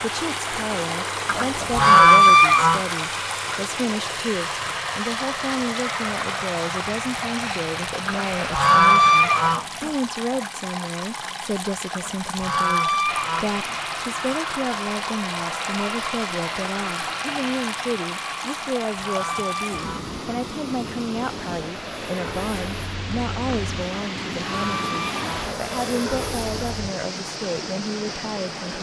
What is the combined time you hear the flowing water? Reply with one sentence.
The flowing water can be heard for 29 seconds in total.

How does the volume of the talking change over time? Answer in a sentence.
The loudness of the talking stays about the same.